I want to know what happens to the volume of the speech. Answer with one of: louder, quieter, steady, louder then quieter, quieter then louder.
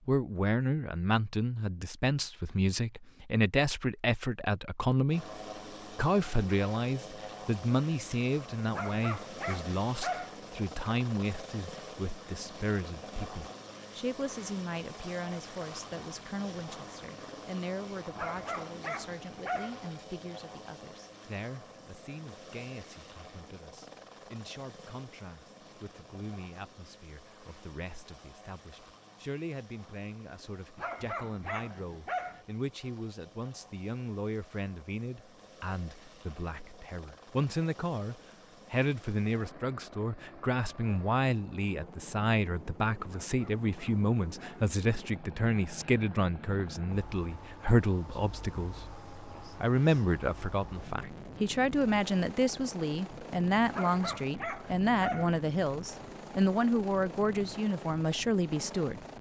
quieter then louder.